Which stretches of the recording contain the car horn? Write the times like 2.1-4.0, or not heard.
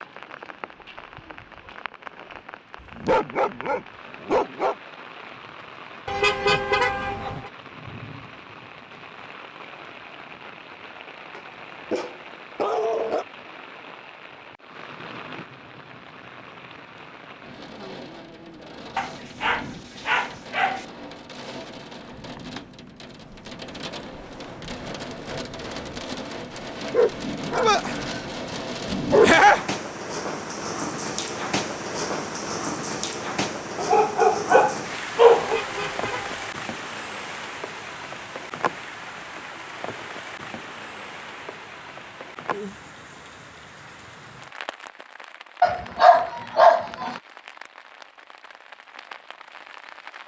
6.0-7.5, 35.4-36.5.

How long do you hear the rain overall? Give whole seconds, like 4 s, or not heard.
50 s.